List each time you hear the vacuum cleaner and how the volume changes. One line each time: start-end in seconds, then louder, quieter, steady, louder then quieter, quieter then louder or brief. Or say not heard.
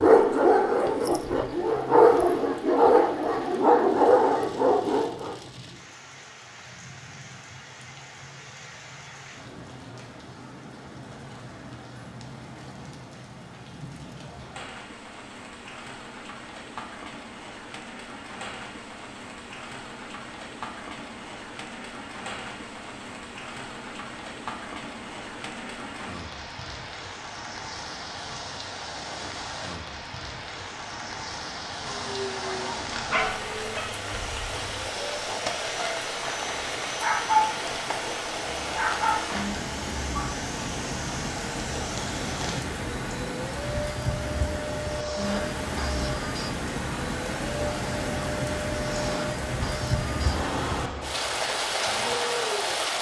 31.8-52.9 steady.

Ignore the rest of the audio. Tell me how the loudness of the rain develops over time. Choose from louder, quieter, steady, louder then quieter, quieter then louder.
louder.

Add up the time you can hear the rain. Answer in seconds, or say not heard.
53 s.